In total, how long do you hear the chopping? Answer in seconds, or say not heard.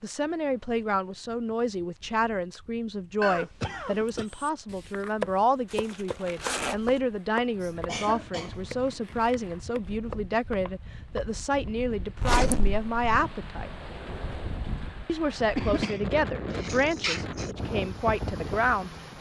8 s.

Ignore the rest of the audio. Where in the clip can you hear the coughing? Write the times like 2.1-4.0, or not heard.
3.2-4.2, 7.6-8.9, 15.6-17.5.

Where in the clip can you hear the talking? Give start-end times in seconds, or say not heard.
0.0-13.8, 15.1-19.1.